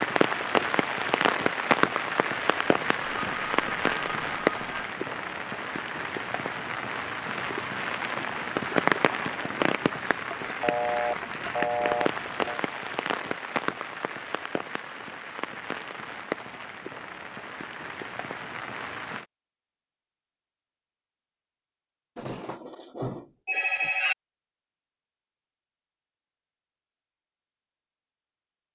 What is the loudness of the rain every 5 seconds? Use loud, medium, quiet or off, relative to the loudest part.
loud, loud, medium, medium, off, off.